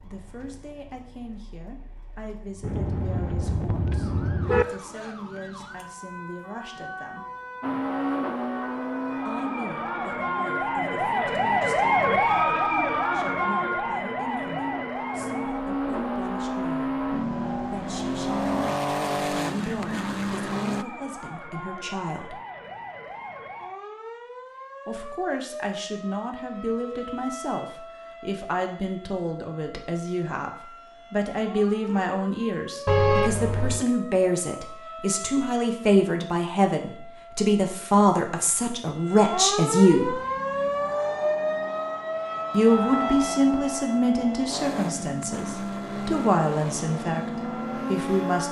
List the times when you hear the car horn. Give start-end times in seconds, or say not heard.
2.6-4.7, 32.9-33.9.